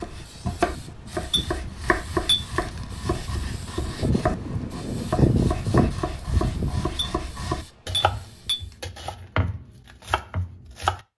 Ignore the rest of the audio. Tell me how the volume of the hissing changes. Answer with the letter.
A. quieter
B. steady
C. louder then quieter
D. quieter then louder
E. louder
C.